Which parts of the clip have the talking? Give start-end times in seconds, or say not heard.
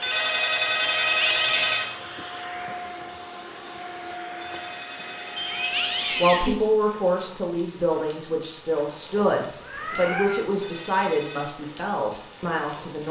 6.2-13.0.